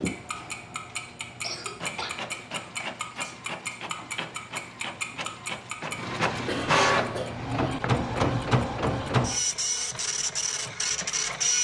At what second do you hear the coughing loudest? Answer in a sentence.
The volume of the coughing peaks at 7 seconds.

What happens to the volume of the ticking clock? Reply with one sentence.
The volume of the ticking clock goes down.